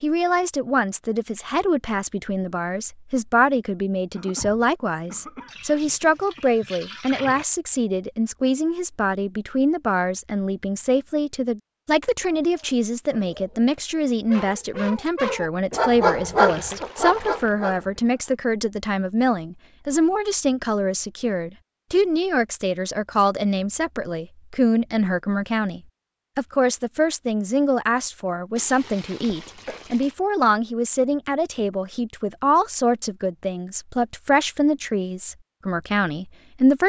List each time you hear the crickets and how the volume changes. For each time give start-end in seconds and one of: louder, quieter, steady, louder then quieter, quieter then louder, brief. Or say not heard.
not heard.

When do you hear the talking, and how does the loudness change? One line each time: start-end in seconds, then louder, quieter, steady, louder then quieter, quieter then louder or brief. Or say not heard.
0.0-36.8 steady.